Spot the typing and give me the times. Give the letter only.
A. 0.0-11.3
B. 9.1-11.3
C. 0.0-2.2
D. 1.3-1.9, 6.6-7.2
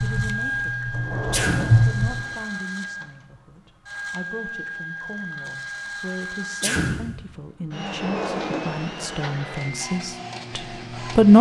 C.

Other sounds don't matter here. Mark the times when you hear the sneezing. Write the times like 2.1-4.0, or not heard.
1.3-1.9, 6.6-7.2.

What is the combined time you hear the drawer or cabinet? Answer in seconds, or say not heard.
3 s.